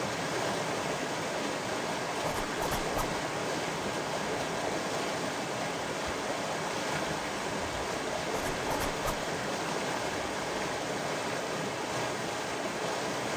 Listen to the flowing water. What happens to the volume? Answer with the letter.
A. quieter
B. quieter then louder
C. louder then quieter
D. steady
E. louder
D.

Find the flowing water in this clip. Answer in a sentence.
You can hear the flowing water from 0.0 to 13.3 s.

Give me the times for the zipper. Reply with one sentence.
You can hear the zipper from 2.2 to 3.1 s and from 8.3 to 9.2 s.